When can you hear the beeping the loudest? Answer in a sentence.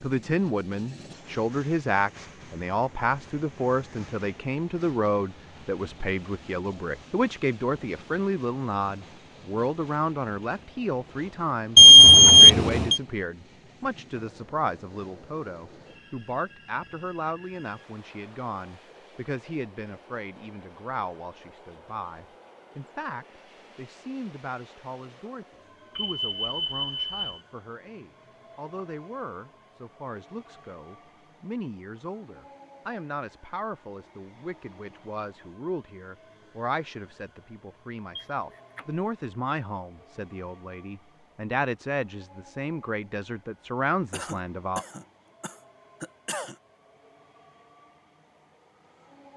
The volume of the beeping peaks at 12 seconds.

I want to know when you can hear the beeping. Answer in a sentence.
You can hear the beeping from 11.8 to 13.0 s, from 25.9 to 27.4 s and from 38.1 to 38.9 s.